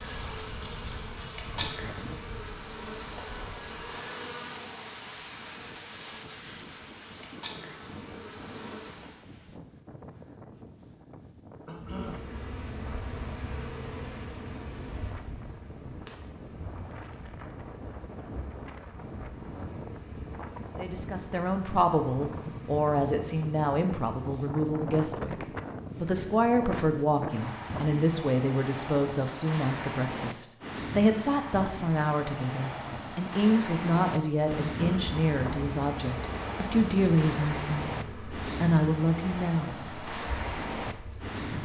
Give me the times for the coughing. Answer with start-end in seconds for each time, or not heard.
11.7-12.3, 34.6-35.1.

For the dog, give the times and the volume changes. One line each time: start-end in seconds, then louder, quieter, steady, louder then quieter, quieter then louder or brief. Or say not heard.
not heard.